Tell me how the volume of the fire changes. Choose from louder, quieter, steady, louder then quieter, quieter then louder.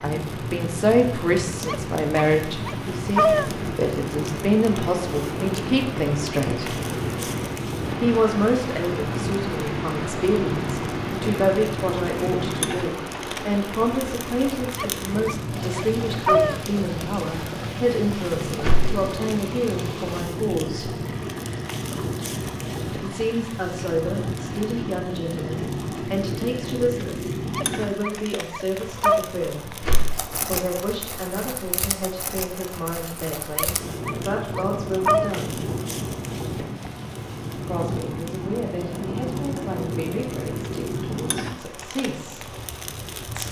steady.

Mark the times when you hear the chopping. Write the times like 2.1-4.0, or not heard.
not heard.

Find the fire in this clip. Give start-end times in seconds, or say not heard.
0.0-43.4.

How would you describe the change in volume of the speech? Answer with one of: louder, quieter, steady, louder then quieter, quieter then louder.
quieter.